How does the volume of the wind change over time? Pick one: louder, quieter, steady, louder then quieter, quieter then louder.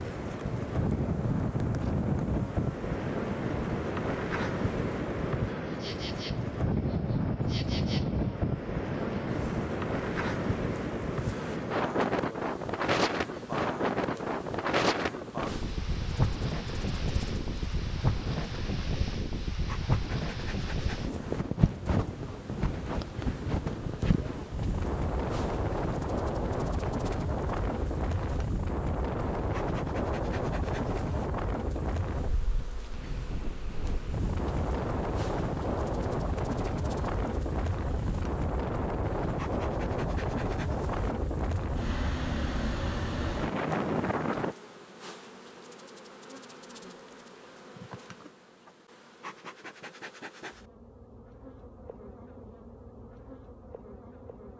steady.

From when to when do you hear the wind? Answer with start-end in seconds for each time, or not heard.
0.0-44.5.